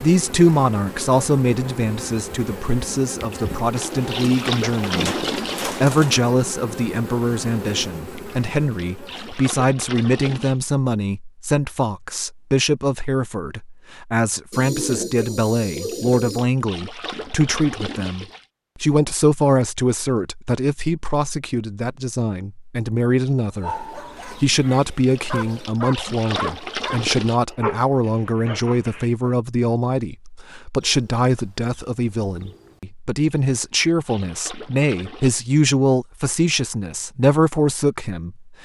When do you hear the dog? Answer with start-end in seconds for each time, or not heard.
23.5-29.4.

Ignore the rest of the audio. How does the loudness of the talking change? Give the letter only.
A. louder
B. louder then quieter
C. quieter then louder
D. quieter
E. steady
E.